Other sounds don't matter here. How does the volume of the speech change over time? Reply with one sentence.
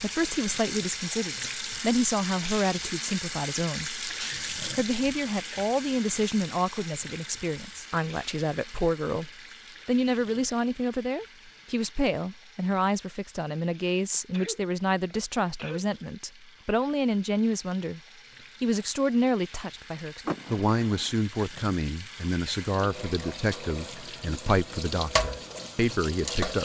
The volume of the speech stays about the same.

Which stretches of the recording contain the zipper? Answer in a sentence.
You can't hear the zipper here.